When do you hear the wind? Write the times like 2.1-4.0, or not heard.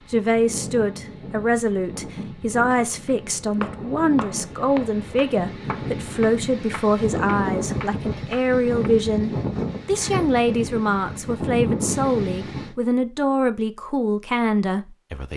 0.0-12.8.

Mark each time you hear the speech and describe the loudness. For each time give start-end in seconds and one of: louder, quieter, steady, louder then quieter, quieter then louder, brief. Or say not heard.
0.1-15.3 steady.